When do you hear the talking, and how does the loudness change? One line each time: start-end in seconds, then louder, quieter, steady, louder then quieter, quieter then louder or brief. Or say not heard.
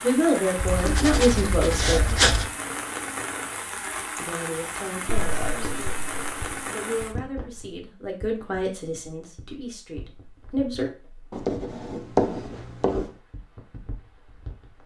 0.0-2.0 brief
4.2-6.0 brief
6.7-10.9 louder then quieter.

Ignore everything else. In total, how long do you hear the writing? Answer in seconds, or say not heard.
5 s.